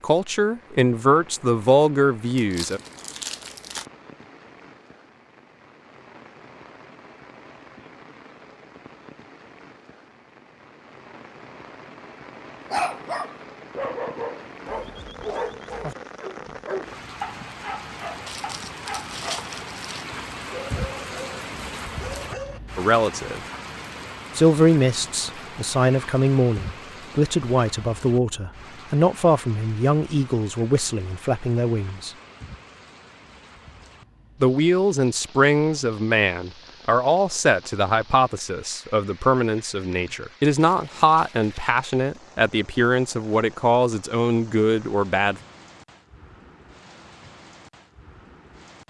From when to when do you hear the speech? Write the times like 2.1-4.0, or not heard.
0.0-2.8, 22.8-23.4, 24.4-32.1, 34.4-45.4.